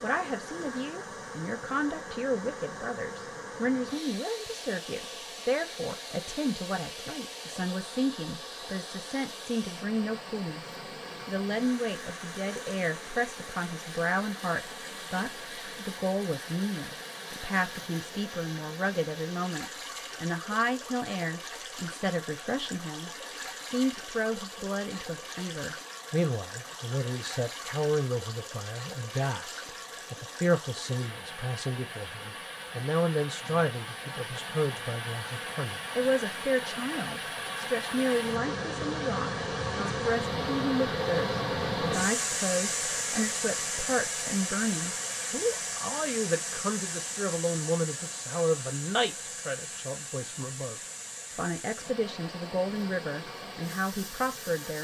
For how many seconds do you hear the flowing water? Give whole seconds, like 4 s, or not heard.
55 s.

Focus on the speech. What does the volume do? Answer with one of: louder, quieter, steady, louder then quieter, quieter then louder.
steady.